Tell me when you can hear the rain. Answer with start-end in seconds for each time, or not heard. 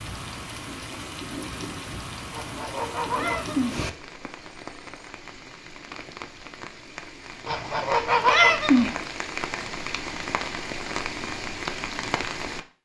0.0-12.6.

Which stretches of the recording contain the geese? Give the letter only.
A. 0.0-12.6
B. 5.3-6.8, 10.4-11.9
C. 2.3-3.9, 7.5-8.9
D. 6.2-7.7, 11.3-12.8
C.